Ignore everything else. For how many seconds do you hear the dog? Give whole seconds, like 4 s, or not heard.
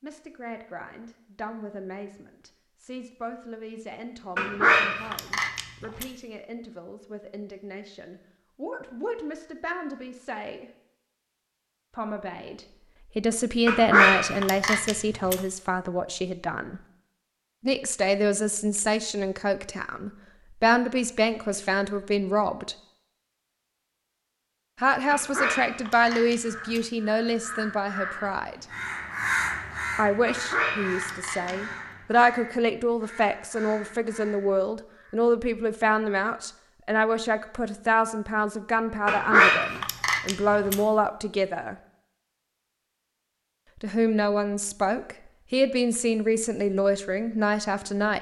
8 s.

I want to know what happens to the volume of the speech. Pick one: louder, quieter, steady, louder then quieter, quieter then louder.
louder.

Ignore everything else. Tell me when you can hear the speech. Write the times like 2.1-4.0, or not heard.
0.0-10.7, 11.9-16.8, 17.6-22.8, 24.8-28.6, 29.9-41.8, 43.8-48.1.